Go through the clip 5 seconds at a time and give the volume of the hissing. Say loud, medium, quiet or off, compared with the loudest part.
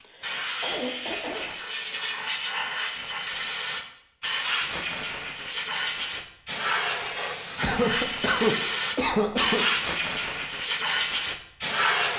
medium, loud, loud.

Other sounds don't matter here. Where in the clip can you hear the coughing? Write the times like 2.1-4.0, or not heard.
0.0-1.6, 7.6-9.7.